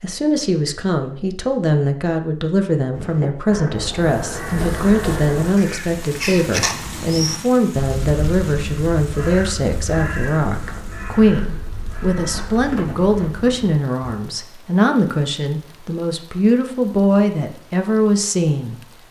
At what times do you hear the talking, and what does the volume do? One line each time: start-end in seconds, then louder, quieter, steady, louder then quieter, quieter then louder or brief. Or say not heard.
0.0-18.8 steady.